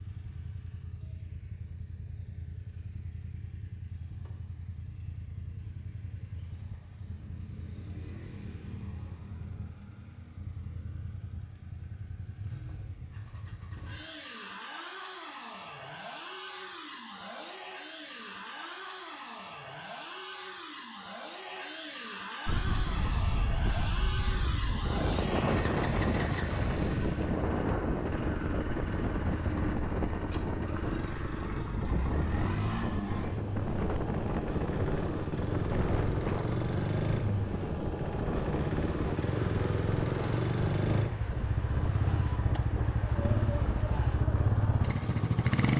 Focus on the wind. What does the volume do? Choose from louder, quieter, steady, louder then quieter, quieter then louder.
quieter.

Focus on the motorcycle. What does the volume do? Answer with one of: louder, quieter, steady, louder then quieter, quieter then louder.
louder.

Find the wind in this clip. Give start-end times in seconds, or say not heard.
22.4-45.5.